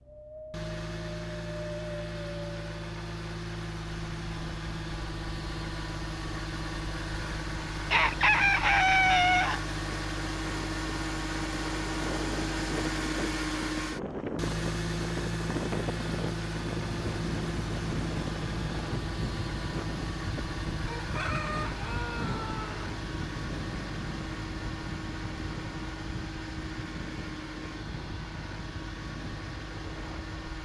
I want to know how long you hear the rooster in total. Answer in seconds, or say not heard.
4 s.